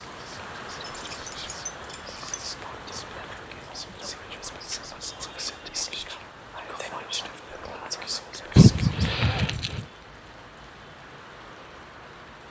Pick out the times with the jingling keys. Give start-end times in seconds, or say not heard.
0.8-2.5, 8.6-9.8.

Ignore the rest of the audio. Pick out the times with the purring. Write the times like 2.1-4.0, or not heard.
not heard.